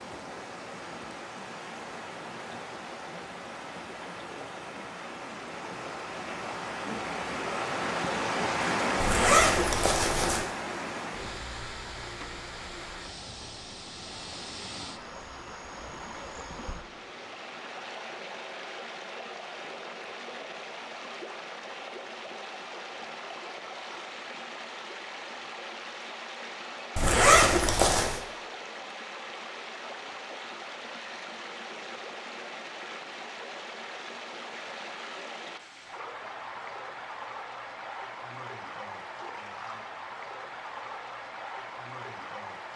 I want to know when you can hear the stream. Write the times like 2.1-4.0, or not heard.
0.0-42.7.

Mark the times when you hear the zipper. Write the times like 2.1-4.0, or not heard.
9.0-10.4, 26.9-28.2.